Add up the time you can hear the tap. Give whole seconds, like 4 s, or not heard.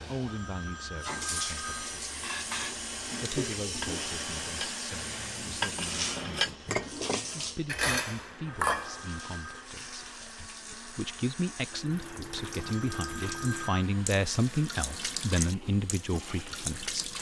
17 s.